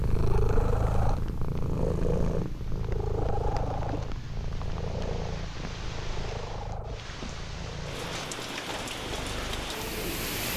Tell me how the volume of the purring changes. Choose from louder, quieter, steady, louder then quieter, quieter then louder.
quieter.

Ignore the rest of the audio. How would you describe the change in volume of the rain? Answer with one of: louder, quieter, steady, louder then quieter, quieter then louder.
louder.